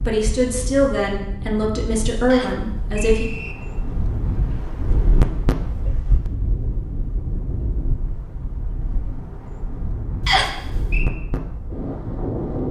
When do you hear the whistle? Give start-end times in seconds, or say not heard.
2.2-3.5, 10.2-11.1.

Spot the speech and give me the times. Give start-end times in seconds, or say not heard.
0.0-3.2.